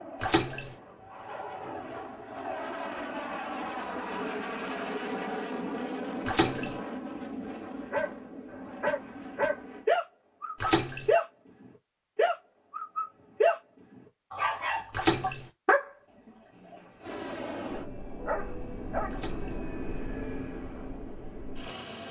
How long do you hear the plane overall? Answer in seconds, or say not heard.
15 s.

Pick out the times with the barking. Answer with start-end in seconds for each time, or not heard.
7.9-11.2, 12.2-13.6, 14.3-19.2.